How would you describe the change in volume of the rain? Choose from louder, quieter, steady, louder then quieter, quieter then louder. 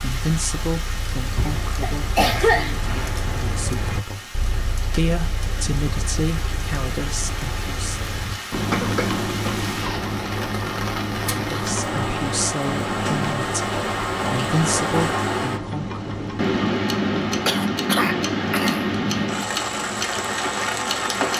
louder.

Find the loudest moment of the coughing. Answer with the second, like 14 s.
2 s.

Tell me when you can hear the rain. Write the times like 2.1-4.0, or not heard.
0.0-21.3.